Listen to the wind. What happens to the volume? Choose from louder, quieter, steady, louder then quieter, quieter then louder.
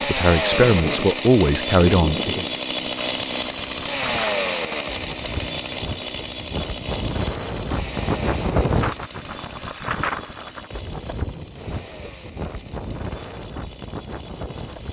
louder then quieter.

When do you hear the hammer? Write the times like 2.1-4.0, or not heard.
not heard.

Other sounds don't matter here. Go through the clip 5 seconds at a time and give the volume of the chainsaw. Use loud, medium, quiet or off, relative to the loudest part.
loud, medium, quiet.